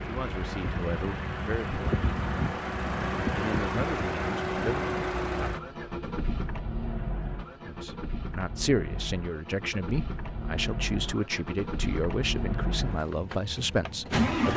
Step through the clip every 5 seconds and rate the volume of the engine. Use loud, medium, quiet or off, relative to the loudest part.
loud, medium, loud.